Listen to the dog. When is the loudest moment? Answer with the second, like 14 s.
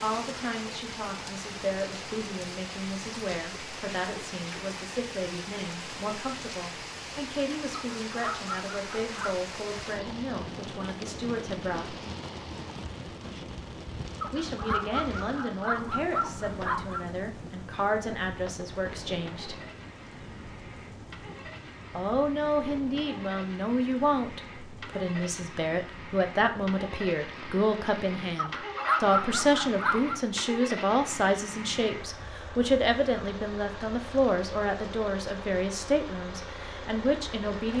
29 s.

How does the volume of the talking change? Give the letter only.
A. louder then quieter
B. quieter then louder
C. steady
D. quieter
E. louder
E.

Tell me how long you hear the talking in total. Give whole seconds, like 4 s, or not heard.
33 s.